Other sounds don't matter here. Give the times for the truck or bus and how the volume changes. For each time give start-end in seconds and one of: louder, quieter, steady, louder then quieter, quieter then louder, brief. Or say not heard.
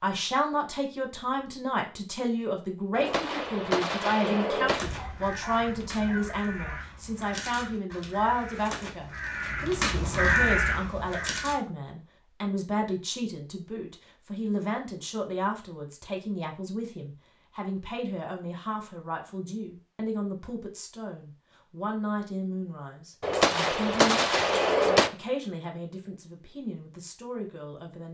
not heard.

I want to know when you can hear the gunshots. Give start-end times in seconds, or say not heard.
3.0-4.8, 23.2-25.1.